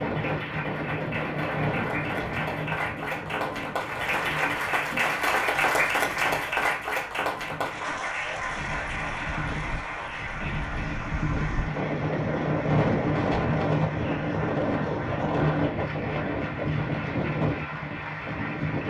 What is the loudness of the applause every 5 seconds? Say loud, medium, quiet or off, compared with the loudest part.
loud, loud, medium, medium.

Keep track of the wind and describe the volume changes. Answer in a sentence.
The loudness of the wind goes down, then up.